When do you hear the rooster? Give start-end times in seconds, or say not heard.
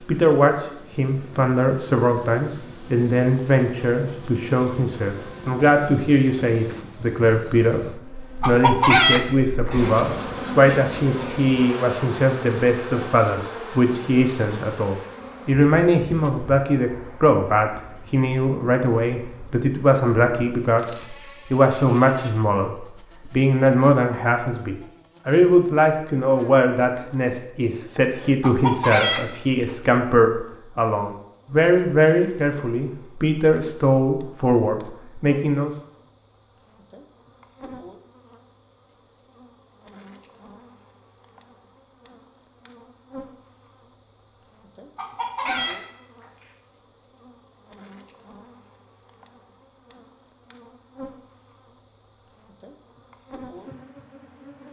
8.4-9.7, 28.4-29.8, 45.0-46.2.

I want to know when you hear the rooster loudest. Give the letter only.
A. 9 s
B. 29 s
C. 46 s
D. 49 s
A.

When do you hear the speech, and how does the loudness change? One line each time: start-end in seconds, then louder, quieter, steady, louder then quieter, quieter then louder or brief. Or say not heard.
0.1-35.7 steady.